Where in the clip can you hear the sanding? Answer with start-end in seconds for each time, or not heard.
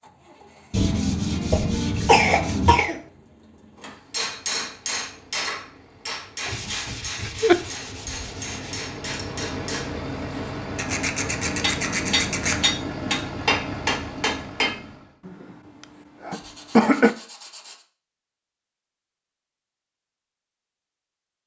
0.7-2.8, 6.5-8.8, 10.8-12.6, 16.3-17.9.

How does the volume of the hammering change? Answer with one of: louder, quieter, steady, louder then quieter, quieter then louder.
quieter then louder.